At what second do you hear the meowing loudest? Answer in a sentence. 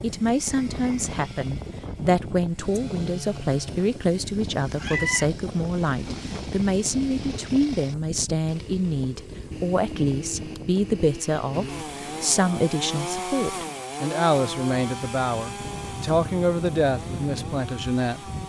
The volume of the meowing peaks at 5 seconds.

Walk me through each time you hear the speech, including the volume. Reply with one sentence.
You can hear the speech from 0.0 to 18.2 s, at a steady volume.